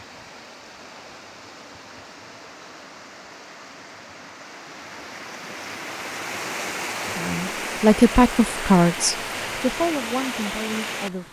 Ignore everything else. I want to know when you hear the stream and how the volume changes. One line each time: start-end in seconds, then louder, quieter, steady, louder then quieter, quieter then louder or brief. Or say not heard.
0.0-11.2 louder.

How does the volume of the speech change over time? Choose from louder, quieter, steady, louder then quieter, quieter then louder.
quieter.